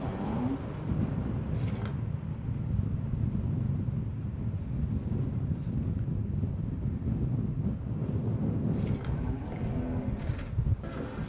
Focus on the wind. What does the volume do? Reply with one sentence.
The volume of the wind stays about the same.